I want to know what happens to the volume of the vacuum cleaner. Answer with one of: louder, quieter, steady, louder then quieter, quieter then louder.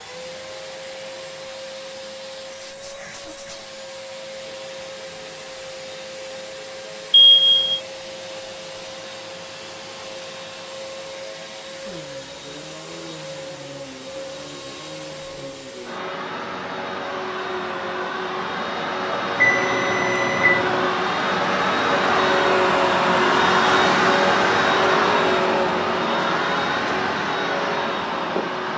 louder.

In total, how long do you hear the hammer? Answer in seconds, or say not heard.
not heard.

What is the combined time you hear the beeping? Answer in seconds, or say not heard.
2 s.